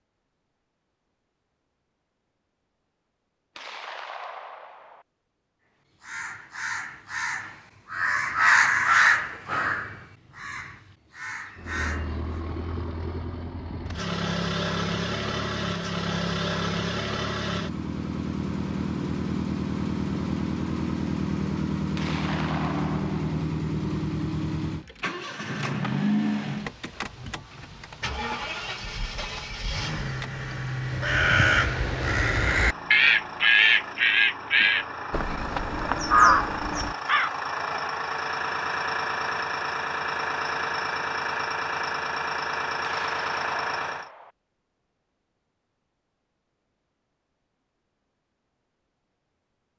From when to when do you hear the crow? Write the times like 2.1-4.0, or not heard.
6.0-12.1, 30.9-37.3.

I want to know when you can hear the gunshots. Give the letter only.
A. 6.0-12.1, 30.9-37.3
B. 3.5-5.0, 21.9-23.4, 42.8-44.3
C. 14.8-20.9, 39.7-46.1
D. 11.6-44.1
B.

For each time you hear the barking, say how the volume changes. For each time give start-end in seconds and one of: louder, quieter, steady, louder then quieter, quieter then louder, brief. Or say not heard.
not heard.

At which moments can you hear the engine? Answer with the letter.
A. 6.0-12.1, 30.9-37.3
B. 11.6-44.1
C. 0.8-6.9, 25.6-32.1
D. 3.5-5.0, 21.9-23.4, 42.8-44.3
B.